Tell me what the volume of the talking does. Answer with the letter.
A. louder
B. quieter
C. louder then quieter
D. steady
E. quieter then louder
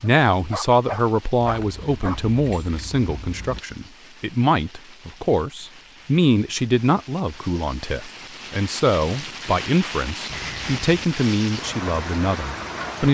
D.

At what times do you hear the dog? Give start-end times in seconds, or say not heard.
0.0-2.2.